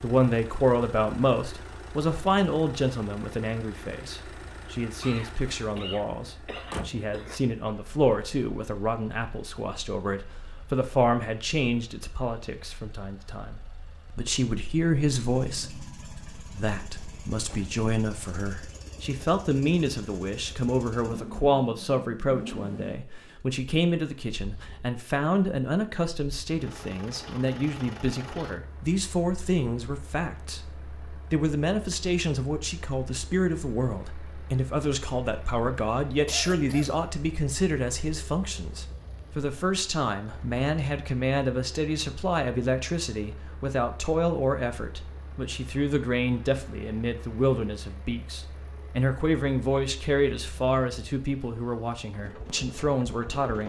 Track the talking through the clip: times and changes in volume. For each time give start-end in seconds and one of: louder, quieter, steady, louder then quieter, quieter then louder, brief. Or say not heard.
0.0-53.6 steady.